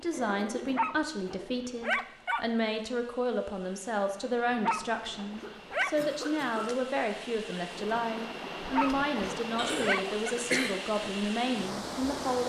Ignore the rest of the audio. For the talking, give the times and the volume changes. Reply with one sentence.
The talking can be heard from 0.0 to 12.4 s, at a steady volume.